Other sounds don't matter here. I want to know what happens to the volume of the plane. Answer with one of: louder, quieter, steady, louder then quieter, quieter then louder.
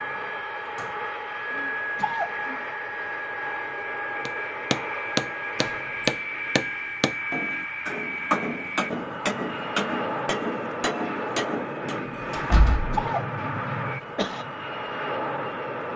steady.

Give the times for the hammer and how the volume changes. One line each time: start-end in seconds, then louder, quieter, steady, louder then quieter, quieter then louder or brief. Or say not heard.
4.2-12.0 quieter.